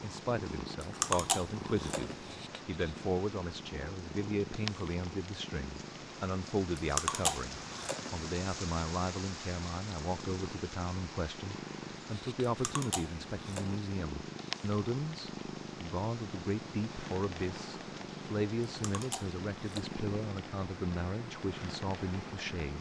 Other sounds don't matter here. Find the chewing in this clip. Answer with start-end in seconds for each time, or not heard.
0.8-2.4, 6.8-8.3, 12.6-13.8, 18.8-20.0.